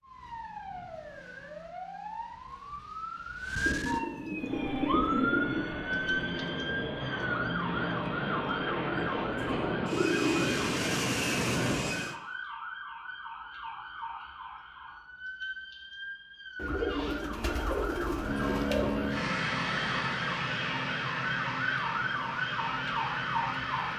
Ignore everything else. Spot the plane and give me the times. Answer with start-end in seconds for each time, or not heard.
4.3-12.2, 18.1-23.9.